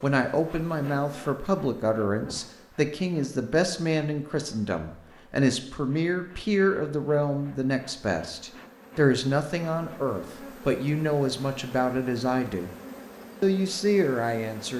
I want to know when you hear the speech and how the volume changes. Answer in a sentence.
You can hear the speech from 0.0 to 12.7 s, at a steady volume; and briefly from 13.4 to 14.7 s.